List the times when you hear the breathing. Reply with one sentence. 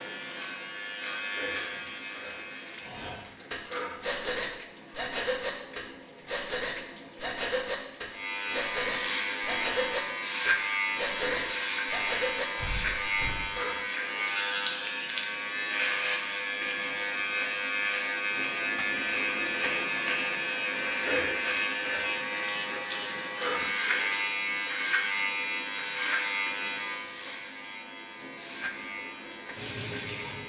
The breathing can be heard from 2.8 to 13.5 s.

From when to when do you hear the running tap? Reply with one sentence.
You can hear the running tap from 0.0 to 30.4 s.